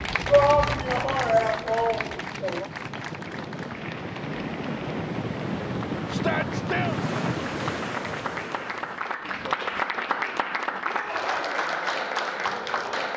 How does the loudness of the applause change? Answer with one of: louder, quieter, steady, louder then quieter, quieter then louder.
quieter then louder.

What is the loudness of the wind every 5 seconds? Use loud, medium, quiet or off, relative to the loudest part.
medium, loud, off.